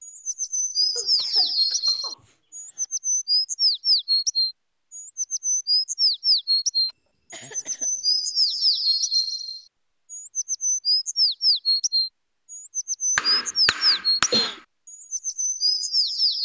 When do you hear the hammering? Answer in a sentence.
You can hear the hammering from 13.2 to 14.6 s.